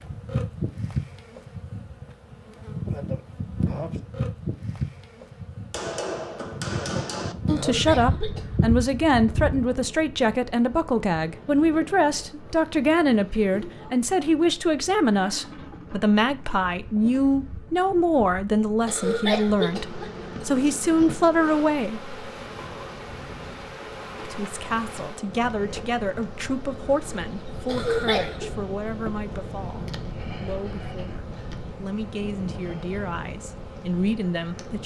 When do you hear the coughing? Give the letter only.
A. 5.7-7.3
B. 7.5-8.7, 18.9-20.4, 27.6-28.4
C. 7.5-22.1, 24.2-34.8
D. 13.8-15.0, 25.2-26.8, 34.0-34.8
B.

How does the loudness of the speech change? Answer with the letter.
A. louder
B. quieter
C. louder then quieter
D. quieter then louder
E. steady
B.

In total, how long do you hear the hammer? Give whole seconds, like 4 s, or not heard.
2 s.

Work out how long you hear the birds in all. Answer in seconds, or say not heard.
not heard.